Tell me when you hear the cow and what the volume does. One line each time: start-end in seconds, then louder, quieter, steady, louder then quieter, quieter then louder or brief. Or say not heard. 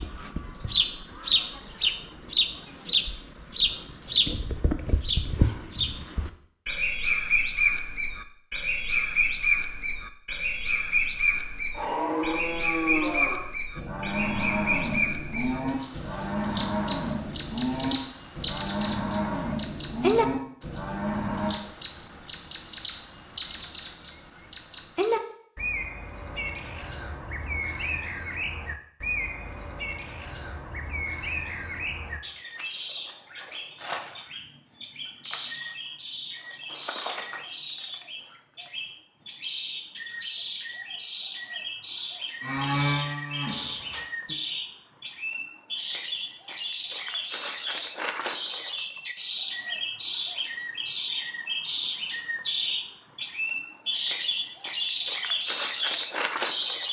11.7-21.6 steady
42.4-44.4 brief.